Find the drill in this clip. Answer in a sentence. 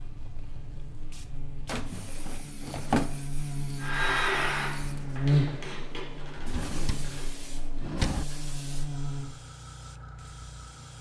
You can hear the drill from 3.8 to 5.7 s.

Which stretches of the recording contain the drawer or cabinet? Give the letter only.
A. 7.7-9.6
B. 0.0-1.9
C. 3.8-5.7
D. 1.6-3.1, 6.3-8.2
D.